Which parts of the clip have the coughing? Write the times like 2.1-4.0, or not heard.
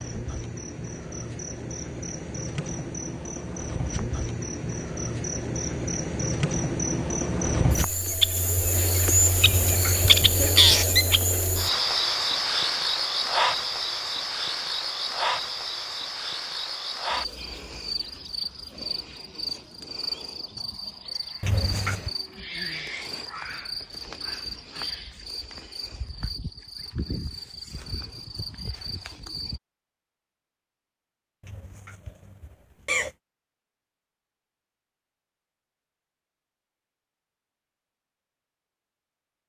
9.4-10.6, 21.4-22.1, 31.4-33.1.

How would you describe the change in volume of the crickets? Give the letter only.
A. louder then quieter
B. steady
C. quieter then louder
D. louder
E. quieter
A.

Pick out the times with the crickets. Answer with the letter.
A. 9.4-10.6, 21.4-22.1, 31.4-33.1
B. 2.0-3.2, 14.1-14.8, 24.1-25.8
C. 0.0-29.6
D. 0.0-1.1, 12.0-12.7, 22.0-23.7
C.